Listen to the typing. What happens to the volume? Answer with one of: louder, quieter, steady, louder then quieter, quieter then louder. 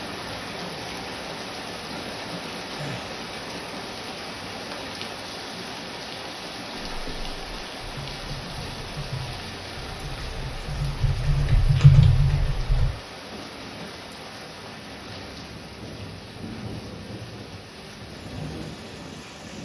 louder.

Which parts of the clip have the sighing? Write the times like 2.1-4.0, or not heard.
2.8-3.2.